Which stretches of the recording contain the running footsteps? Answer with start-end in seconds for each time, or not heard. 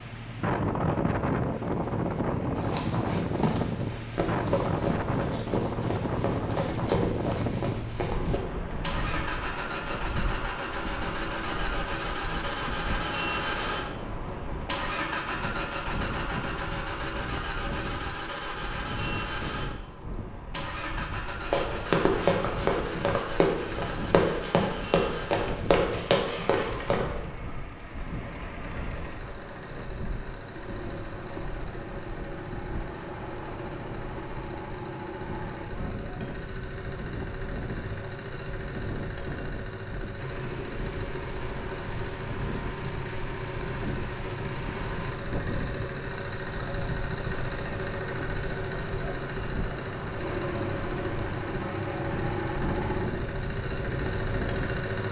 2.5-8.4, 21.2-27.1.